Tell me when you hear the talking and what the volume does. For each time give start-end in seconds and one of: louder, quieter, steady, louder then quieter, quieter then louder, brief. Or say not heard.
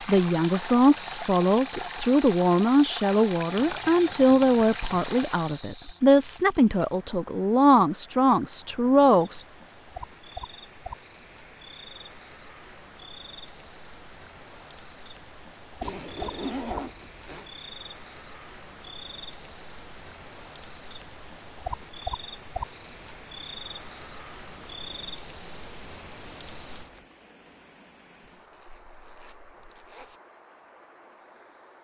0.1-9.4 steady.